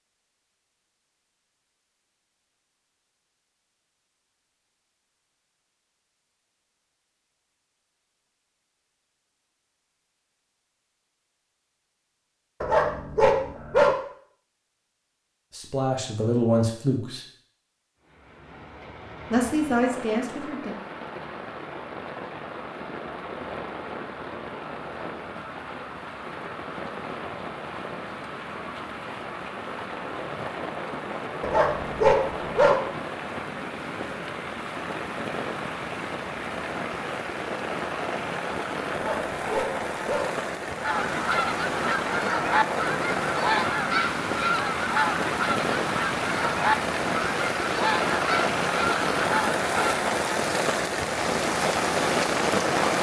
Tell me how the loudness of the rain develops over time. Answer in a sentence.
The loudness of the rain goes up.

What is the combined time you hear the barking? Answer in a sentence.
The barking can be heard for 4 seconds in total.